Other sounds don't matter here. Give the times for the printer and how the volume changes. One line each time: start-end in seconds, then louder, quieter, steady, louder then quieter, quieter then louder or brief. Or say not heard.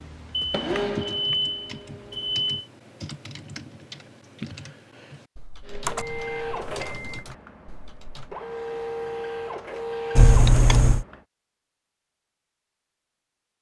0.0-2.6 brief
5.6-11.2 quieter then louder.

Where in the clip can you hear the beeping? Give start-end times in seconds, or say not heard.
0.3-2.6, 5.8-7.2, 10.2-11.1.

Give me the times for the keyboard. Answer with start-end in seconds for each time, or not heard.
0.9-8.3.